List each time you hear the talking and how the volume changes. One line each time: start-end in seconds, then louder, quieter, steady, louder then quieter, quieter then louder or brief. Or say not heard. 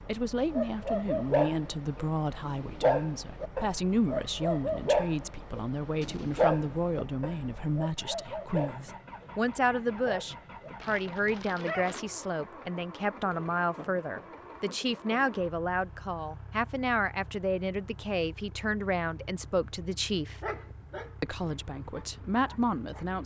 0.1-20.4 steady
21.2-23.2 brief.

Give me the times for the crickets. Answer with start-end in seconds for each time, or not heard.
not heard.